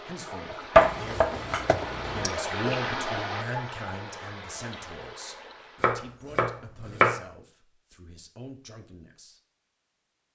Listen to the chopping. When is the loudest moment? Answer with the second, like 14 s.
1 s.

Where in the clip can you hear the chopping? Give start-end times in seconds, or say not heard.
0.8-2.3, 5.8-7.2.